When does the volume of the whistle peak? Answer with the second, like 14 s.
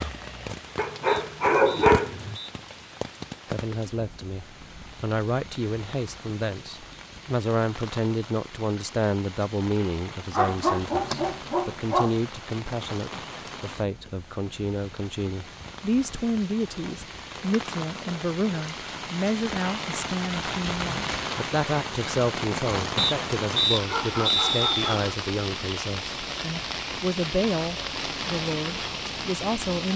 24 s.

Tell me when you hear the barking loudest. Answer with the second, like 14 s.
2 s.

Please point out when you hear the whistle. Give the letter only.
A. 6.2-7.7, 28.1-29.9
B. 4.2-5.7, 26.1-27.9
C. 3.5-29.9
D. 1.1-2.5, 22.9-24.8
D.